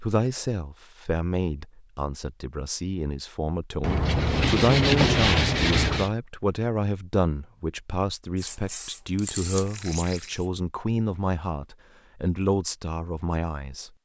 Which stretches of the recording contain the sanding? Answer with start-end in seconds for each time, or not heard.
3.8-6.1.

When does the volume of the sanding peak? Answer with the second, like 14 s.
5 s.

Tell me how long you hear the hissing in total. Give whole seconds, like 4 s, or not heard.
2 s.